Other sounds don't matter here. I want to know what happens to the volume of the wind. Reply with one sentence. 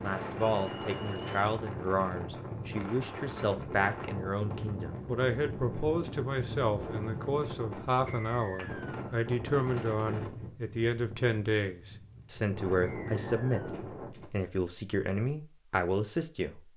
The loudness of the wind stays about the same.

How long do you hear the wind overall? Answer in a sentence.
The wind can be heard for 14 seconds in total.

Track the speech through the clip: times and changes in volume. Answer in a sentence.
The speech can be heard from 0.0 to 16.6 s, at a steady volume.